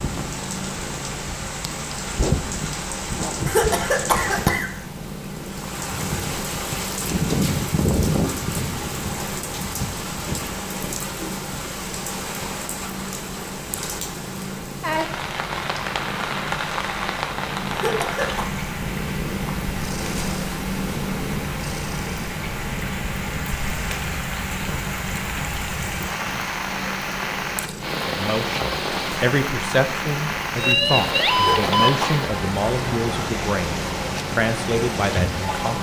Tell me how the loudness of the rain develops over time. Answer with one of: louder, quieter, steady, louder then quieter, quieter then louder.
steady.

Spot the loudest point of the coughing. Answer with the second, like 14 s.
4 s.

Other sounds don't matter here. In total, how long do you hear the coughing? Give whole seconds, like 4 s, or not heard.
3 s.